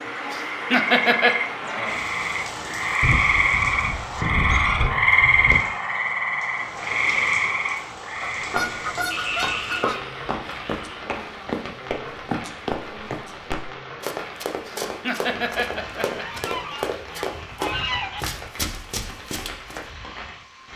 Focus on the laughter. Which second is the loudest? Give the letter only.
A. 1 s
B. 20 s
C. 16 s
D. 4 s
A.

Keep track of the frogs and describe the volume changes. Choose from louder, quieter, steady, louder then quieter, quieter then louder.
louder then quieter.